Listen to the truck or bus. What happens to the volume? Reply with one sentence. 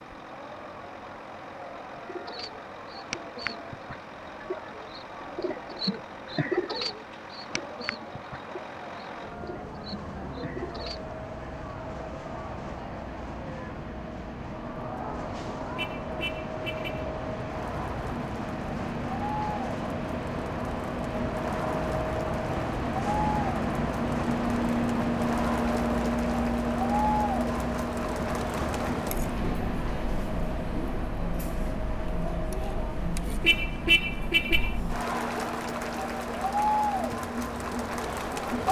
The loudness of the truck or bus goes up, then down.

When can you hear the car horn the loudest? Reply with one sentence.
The loudest moment of the car horn is at 34 seconds.